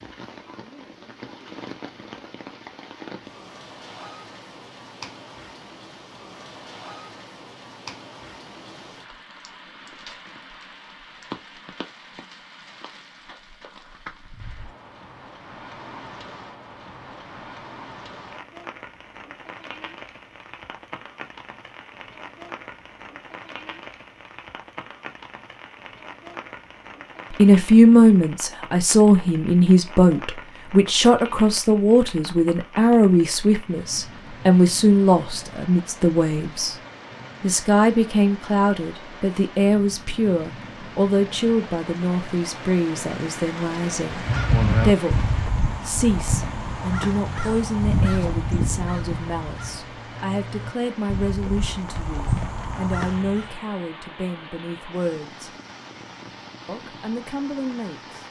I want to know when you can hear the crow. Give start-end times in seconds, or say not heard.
44.0-53.5.